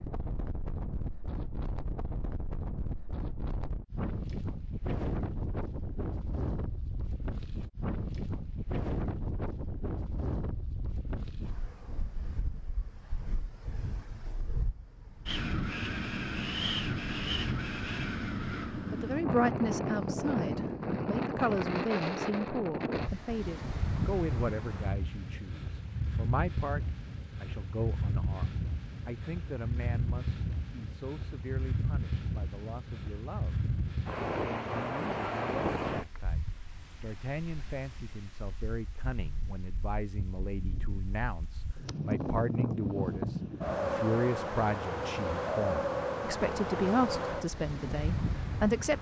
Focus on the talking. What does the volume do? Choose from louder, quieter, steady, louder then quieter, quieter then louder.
quieter then louder.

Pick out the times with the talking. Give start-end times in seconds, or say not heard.
18.9-48.9.